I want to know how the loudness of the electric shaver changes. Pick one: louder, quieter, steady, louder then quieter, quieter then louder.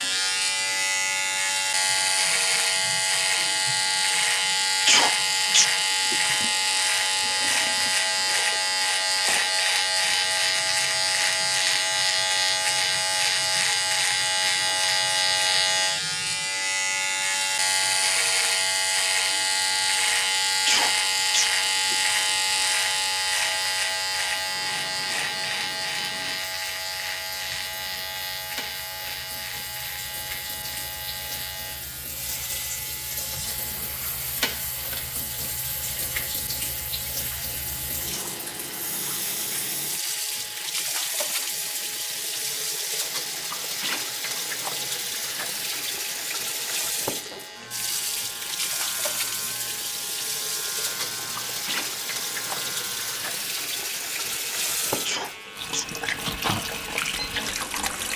quieter.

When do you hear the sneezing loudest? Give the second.
5 s.